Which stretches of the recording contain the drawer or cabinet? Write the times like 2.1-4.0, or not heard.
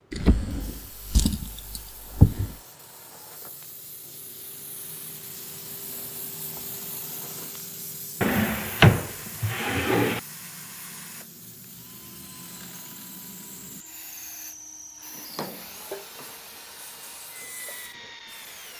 0.1-2.5, 8.2-10.2, 15.0-16.4.